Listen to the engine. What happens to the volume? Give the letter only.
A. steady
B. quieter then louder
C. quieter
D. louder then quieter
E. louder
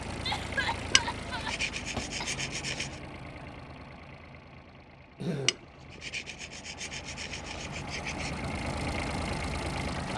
B.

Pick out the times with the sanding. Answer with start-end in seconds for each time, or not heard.
0.9-3.0, 5.5-8.4.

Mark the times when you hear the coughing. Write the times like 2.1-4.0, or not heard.
0.2-2.5, 5.2-5.7.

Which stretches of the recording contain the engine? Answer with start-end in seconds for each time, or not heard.
0.0-10.1.